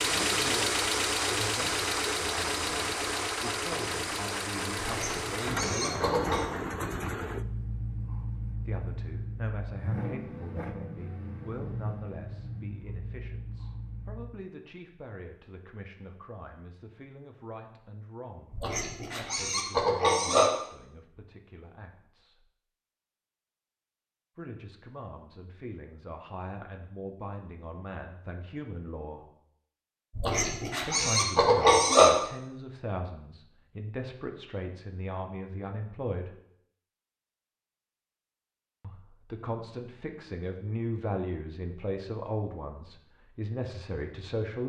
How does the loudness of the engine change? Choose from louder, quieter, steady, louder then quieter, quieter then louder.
quieter.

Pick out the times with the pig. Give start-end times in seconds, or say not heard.
4.8-6.5, 18.5-20.5, 30.1-32.1.